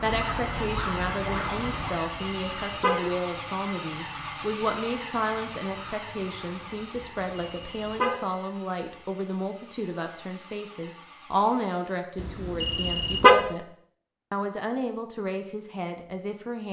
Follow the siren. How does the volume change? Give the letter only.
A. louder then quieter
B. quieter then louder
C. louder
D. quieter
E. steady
D.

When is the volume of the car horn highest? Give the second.
13 s.